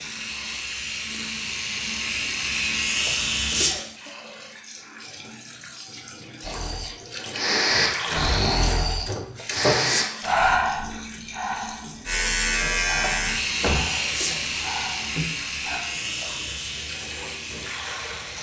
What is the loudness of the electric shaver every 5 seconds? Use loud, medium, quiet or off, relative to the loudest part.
loud, off, loud, medium.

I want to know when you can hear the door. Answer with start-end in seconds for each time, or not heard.
13.1-14.3.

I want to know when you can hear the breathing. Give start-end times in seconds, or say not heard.
6.4-15.8.